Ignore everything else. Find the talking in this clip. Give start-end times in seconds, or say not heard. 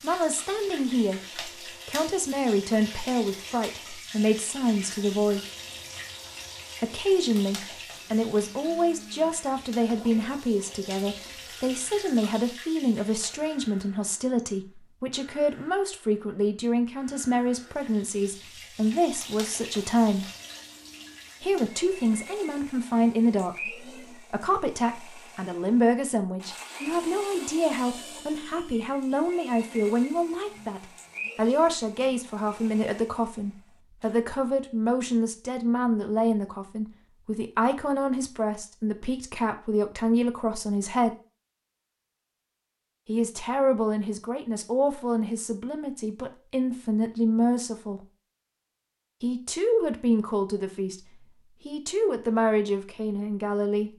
0.0-5.5, 6.8-20.3, 21.4-41.1, 43.0-48.0, 49.2-53.9.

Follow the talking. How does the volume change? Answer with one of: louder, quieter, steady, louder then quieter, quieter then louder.
steady.